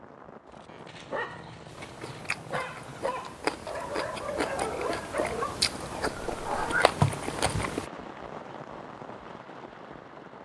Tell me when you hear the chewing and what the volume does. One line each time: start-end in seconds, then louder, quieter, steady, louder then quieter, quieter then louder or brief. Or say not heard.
1.7-7.8 louder.